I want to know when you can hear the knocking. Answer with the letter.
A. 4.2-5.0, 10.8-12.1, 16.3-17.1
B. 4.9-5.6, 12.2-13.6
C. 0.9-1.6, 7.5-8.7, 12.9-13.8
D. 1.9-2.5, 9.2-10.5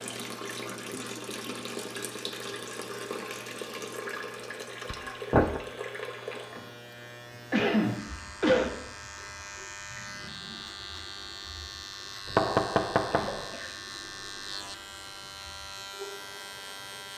B.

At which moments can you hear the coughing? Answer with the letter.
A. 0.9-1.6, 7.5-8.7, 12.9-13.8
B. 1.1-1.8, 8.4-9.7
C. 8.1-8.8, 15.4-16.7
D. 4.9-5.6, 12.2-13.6
A.